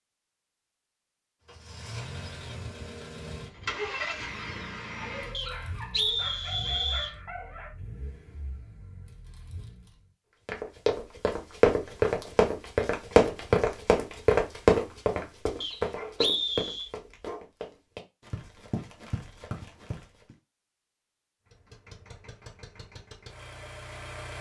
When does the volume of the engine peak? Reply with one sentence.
The volume of the engine peaks at 4 seconds.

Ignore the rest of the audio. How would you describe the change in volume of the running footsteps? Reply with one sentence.
The loudness of the running footsteps goes down.